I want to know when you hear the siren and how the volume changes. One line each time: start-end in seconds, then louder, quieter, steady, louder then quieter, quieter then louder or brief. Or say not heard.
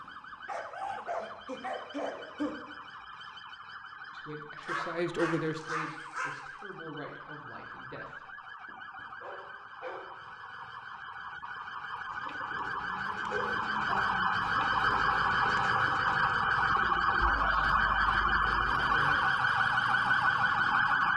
0.0-21.1 louder.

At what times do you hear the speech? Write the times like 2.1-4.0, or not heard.
4.1-8.3.